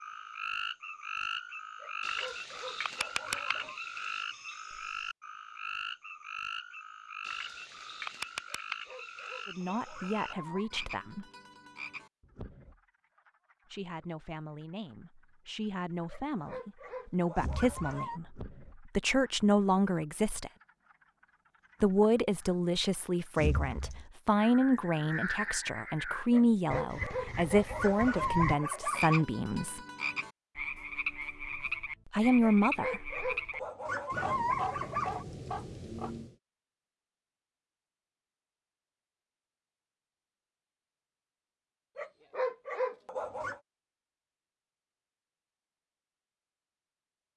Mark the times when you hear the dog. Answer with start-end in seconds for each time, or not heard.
1.8-3.8, 8.4-10.7, 16.1-18.2, 26.3-29.2, 32.4-35.2, 42.0-43.6.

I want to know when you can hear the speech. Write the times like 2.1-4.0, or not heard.
9.4-11.2, 13.7-20.5, 21.8-29.8, 32.1-33.2.